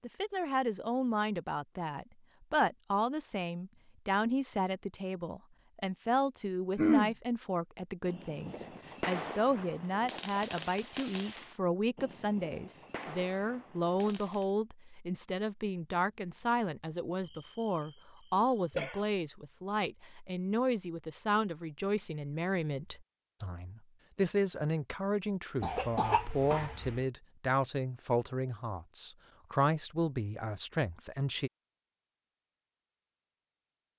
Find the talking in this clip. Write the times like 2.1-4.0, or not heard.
0.0-31.5.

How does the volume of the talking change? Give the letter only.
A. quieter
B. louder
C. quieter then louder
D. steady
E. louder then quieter
D.